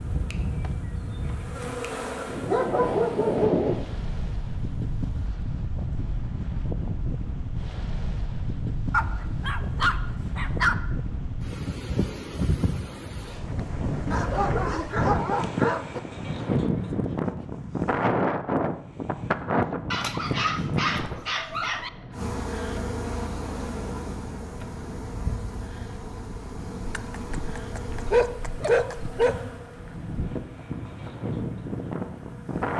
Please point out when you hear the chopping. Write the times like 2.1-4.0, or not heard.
not heard.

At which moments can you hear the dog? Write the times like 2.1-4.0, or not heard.
2.4-3.8, 8.9-10.8, 14.1-16.0, 19.9-21.9, 26.9-29.4.